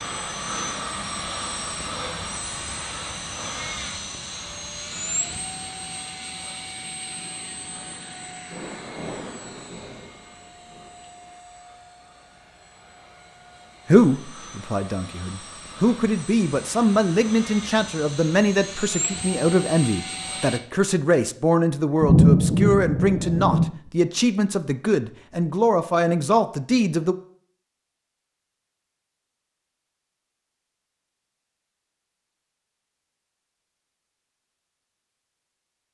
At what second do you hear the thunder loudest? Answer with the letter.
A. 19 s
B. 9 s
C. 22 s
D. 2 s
C.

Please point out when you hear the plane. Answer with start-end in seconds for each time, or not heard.
0.0-20.6.